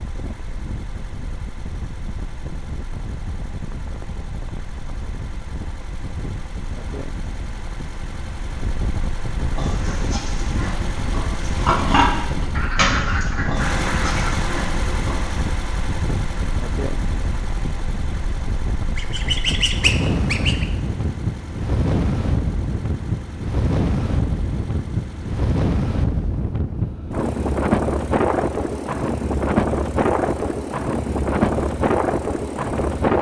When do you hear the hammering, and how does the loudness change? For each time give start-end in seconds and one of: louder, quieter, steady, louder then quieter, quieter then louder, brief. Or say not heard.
not heard.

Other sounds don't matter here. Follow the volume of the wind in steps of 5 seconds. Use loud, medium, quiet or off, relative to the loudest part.
quiet, quiet, medium, medium, loud, loud, loud.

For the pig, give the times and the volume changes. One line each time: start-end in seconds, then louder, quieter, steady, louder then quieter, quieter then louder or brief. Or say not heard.
9.6-15.3 louder then quieter.